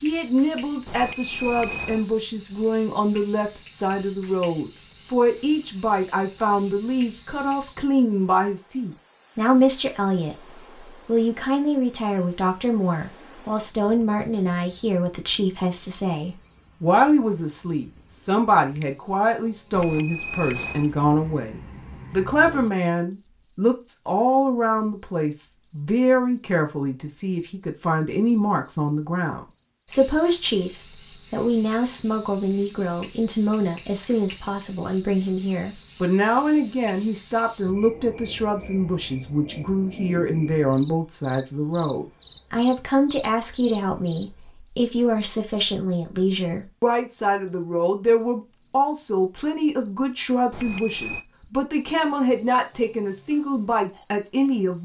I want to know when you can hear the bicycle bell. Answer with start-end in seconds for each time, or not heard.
0.8-2.0, 19.7-20.9, 50.5-51.2.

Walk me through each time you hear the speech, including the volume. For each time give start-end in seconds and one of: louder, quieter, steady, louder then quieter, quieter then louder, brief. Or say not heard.
0.0-54.8 steady.